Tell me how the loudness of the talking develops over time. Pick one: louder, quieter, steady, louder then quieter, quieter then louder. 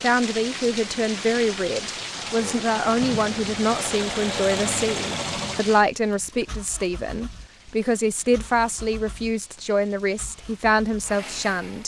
steady.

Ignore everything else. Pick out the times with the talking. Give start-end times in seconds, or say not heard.
0.0-11.8.